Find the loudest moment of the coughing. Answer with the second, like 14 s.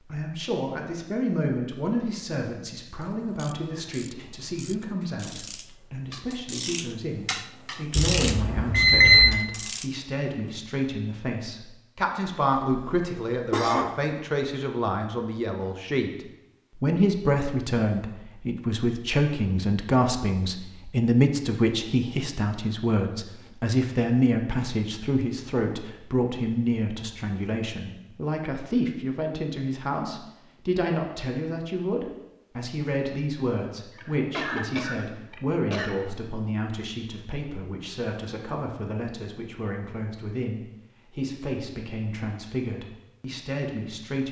14 s.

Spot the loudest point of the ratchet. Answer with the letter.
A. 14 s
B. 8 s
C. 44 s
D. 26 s
B.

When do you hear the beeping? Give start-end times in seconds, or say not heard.
8.0-9.2.